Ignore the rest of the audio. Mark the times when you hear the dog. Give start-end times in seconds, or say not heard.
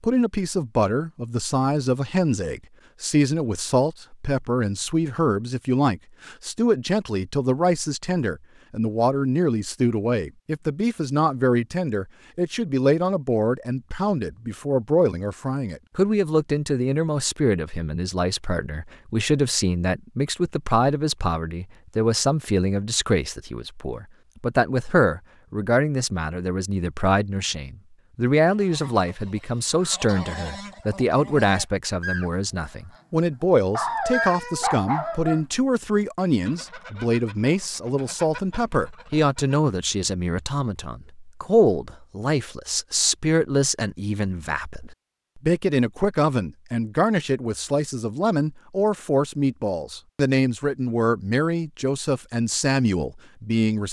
33.7-35.4.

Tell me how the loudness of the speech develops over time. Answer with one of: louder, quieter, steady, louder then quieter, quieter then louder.
steady.